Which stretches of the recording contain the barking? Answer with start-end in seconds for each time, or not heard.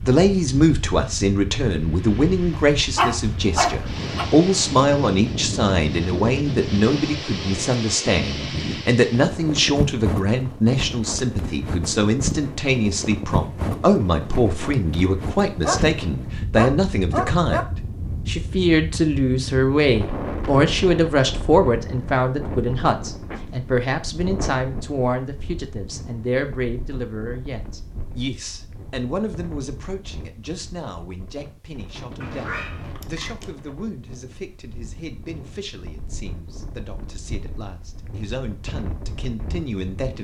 2.5-4.2, 15.6-17.6, 32.2-33.5.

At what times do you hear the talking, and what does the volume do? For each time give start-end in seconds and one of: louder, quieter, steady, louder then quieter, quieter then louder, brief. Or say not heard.
0.0-40.1 quieter.